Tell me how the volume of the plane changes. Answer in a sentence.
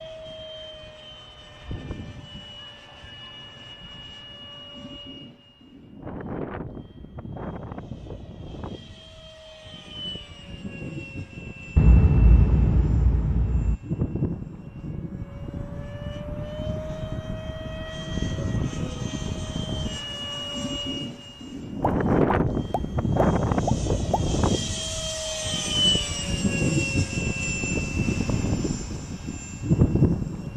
The volume of the plane goes up.